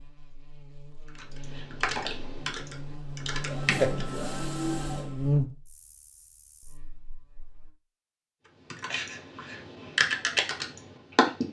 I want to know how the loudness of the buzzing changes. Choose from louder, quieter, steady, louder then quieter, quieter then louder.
louder then quieter.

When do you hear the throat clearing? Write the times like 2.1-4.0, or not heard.
not heard.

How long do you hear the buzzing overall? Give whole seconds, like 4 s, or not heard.
8 s.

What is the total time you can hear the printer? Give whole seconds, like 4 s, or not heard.
2 s.